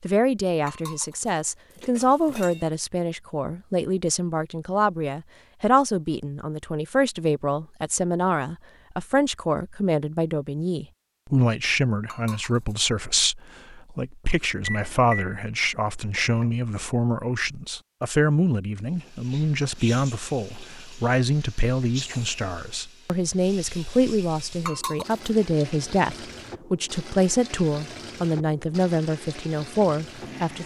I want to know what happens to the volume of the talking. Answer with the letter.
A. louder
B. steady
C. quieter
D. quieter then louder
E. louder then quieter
B.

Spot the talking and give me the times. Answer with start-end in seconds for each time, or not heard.
0.0-30.6.